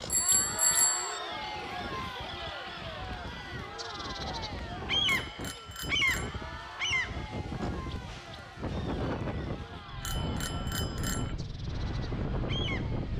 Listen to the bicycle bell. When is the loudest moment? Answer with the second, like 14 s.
1 s.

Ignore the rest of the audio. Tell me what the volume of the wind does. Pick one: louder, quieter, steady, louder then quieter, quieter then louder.
louder.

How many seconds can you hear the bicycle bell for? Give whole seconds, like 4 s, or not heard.
4 s.